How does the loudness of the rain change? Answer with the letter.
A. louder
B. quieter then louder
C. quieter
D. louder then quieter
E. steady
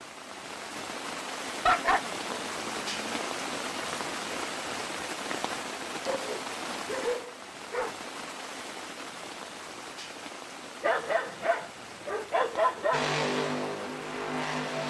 C.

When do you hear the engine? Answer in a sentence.
You can hear the engine from 12.9 to 14.8 s.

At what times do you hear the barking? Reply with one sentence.
The barking can be heard from 1.6 to 3.3 s, from 6.0 to 8.0 s and from 10.8 to 13.0 s.